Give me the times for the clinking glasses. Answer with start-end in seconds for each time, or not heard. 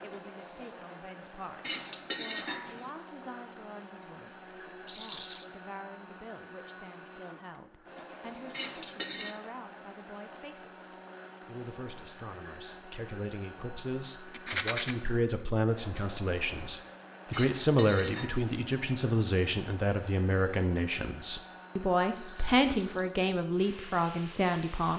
1.6-2.9, 8.5-9.4, 17.3-18.6.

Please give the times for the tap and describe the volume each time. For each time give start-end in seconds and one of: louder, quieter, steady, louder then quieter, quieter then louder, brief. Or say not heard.
not heard.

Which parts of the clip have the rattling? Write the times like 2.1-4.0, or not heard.
4.8-5.5, 14.3-14.9, 22.1-23.1.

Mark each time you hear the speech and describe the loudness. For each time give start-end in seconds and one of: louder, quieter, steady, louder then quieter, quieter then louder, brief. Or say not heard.
0.0-24.9 louder.